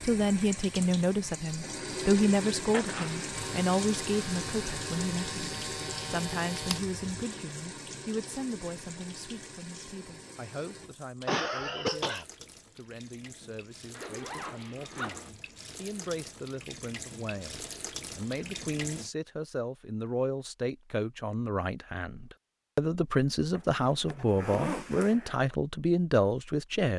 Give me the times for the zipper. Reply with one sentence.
The zipper can be heard from 2.7 to 3.4 s, from 13.9 to 15.3 s and from 23.6 to 25.4 s.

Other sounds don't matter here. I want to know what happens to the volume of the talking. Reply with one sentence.
The volume of the talking goes down, then up.